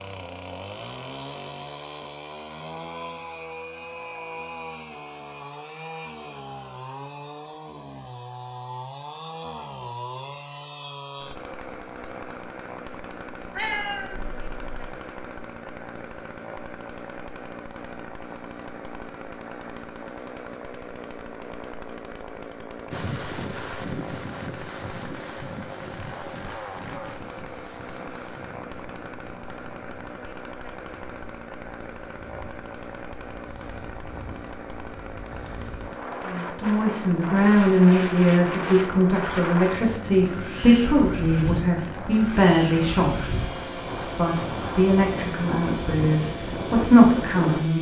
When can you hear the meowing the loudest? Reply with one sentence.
The loudest moment of the meowing is at 14 seconds.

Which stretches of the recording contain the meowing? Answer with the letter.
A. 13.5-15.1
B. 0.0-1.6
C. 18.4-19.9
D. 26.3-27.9
A.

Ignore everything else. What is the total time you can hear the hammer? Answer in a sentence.
The hammer can't be heard in this clip.